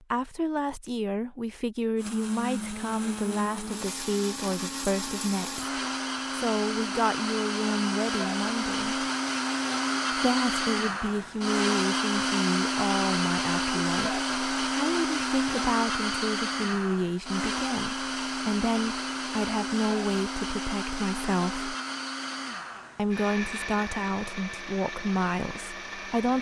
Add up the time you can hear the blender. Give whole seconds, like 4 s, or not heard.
24 s.